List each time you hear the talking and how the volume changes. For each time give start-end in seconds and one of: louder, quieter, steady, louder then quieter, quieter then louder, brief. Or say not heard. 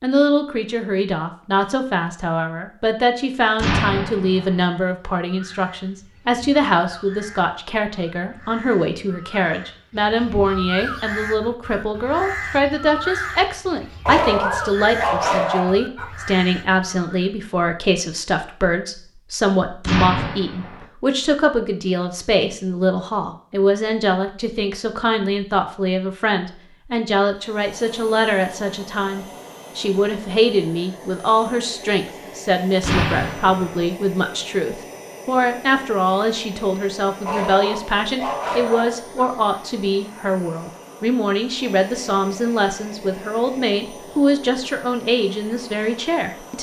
0.0-46.5 steady.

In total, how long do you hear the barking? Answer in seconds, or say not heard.
4 s.